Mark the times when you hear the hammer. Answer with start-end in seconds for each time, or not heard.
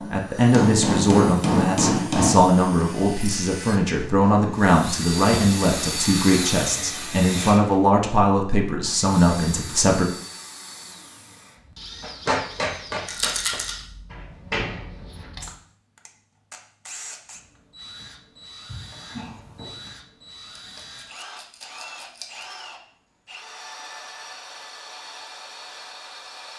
0.0-2.4, 12.0-13.6.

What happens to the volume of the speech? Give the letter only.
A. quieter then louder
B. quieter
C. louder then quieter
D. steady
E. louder
D.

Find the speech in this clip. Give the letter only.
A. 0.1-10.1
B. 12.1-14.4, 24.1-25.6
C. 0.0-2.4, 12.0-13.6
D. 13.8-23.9
A.